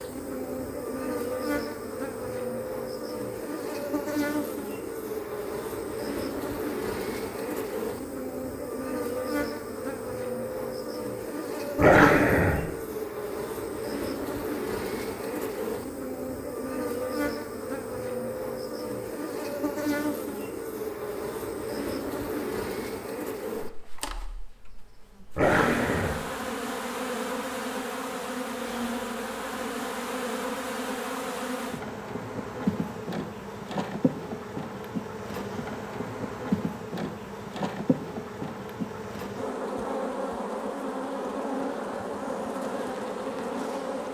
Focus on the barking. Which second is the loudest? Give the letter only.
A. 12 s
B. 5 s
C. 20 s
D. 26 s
A.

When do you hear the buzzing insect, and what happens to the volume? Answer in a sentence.
The buzzing insect can be heard from 0.0 to 44.0 s, at a steady volume.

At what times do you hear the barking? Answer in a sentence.
The barking can be heard from 11.8 to 12.7 s and from 25.4 to 26.1 s.